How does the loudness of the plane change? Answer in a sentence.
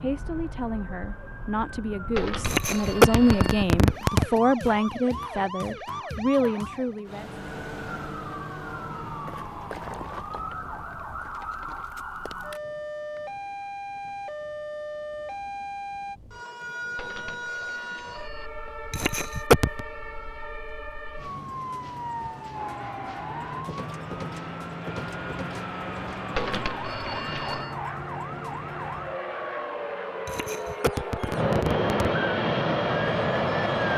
The volume of the plane goes up.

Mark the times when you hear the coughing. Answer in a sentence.
The coughing can be heard from 2.4 to 4.2 s, from 18.9 to 19.8 s and from 30.2 to 31.9 s.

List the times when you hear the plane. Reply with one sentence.
You can hear the plane from 22.5 to 33.9 s.